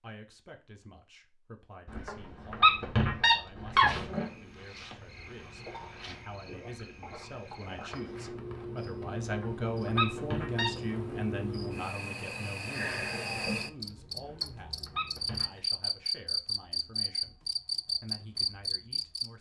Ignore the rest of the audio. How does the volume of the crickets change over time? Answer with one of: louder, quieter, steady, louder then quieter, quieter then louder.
louder.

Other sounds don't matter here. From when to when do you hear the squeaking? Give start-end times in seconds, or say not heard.
1.9-4.2, 9.2-10.7, 14.2-15.6.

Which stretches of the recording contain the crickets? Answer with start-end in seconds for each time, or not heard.
3.9-19.3.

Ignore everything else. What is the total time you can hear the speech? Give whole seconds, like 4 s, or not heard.
19 s.